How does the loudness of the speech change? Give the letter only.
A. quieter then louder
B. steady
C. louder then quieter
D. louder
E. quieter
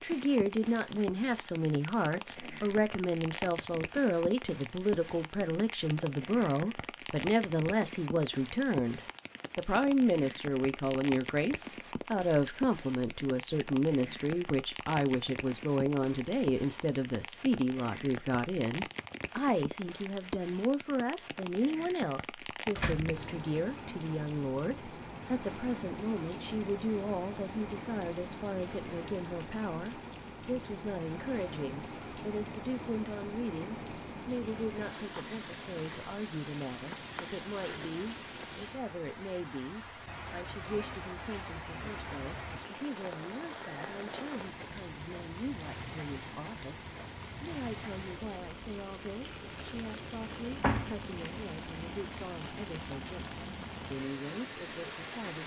E.